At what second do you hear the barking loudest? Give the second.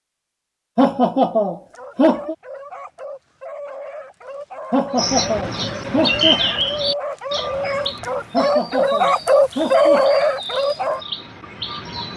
10 s.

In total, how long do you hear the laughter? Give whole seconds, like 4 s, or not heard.
5 s.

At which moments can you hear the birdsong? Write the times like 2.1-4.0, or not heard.
5.0-12.1.